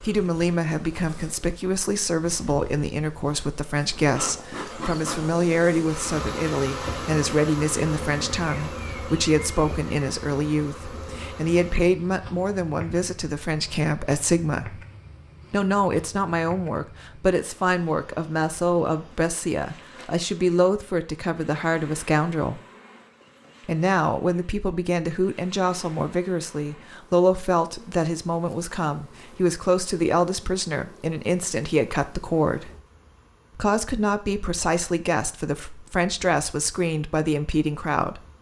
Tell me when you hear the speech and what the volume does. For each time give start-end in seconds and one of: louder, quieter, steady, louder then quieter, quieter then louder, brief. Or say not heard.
0.0-14.8 steady
15.5-22.6 steady
23.6-32.7 steady
33.5-38.2 steady.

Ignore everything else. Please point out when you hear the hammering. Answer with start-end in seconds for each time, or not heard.
not heard.